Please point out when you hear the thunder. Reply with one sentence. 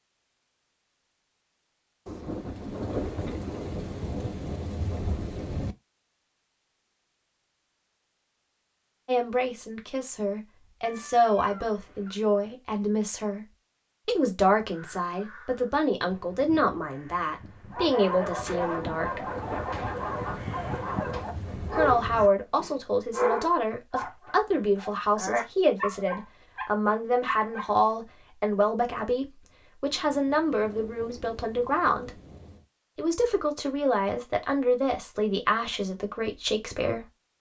You can hear the thunder from 2.0 to 5.8 s, from 18.6 to 22.3 s and from 29.9 to 32.6 s.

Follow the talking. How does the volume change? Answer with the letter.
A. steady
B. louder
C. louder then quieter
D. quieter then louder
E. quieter
A.